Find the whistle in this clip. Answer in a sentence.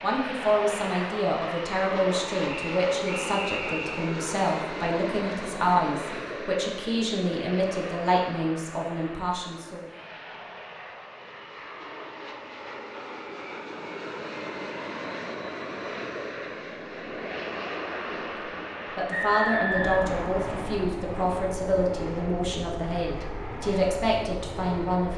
The whistle can be heard from 2.5 to 4.1 s and from 19.1 to 20.9 s.